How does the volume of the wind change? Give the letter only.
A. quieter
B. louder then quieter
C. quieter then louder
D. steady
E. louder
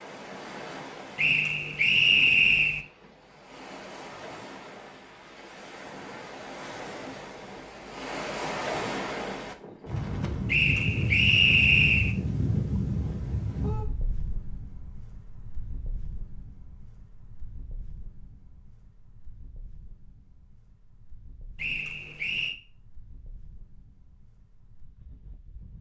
B.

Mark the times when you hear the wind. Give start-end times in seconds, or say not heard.
0.0-25.7.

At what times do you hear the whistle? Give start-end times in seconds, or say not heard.
1.1-2.9, 10.4-12.2, 21.6-22.6.